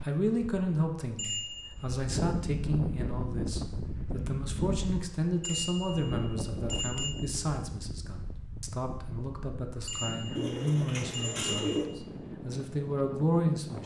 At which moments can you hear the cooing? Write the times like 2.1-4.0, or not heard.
10.3-11.8.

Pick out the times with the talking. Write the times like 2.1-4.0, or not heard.
0.0-13.8.